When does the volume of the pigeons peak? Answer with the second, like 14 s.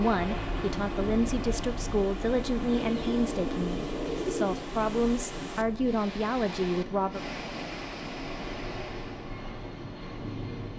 4 s.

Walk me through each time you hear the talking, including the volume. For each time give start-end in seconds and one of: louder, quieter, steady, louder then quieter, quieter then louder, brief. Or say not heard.
0.0-7.2 steady.